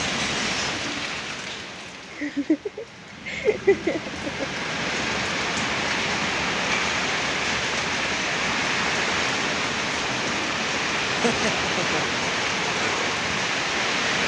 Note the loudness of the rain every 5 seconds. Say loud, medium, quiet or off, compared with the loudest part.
medium, loud, loud.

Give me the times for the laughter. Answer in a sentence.
You can hear the laughter from 2.1 to 4.5 s and from 11.1 to 12.2 s.